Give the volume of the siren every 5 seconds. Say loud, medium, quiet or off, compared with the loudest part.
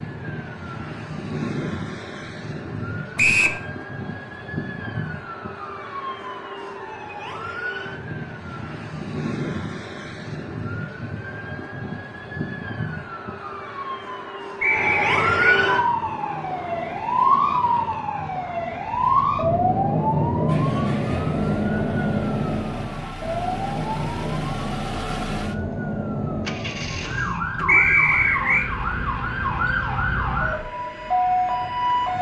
medium, medium, medium, loud, loud, medium, loud.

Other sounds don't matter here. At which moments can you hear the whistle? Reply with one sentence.
You can hear the whistle from 3.1 to 3.6 s, from 14.6 to 15.6 s and from 27.6 to 28.7 s.